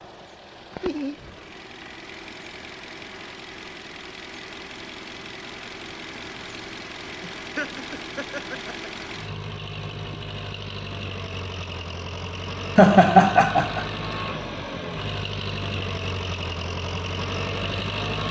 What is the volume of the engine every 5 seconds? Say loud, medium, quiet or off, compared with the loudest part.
medium, medium, loud, loud.